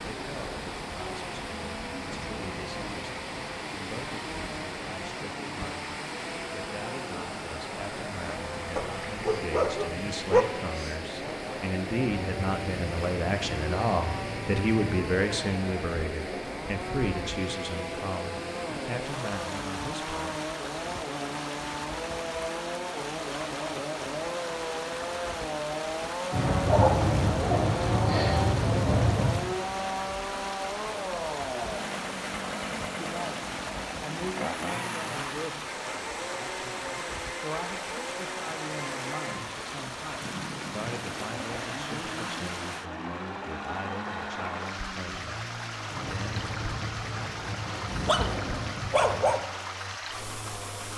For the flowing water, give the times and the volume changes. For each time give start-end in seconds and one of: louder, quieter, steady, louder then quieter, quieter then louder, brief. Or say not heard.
0.0-50.9 steady.